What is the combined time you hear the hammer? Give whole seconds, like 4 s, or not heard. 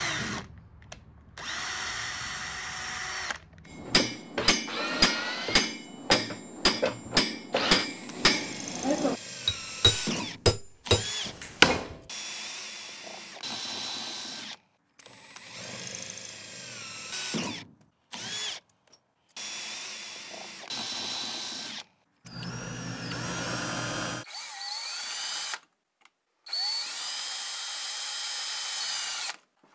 8 s.